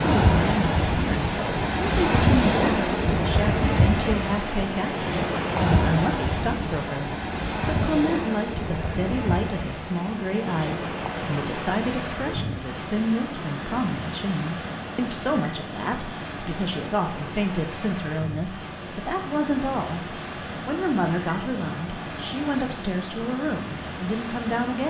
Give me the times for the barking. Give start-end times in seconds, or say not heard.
not heard.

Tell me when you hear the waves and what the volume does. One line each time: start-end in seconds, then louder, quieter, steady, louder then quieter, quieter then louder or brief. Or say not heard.
0.0-24.8 quieter.